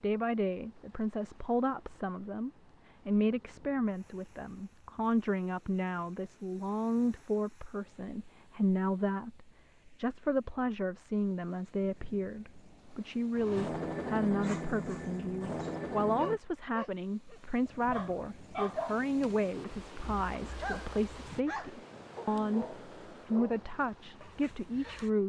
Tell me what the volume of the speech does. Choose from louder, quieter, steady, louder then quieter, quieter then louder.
steady.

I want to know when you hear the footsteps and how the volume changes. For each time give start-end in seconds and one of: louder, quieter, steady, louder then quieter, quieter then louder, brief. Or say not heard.
not heard.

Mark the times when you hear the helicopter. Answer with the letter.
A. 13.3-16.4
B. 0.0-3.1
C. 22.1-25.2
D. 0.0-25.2
A.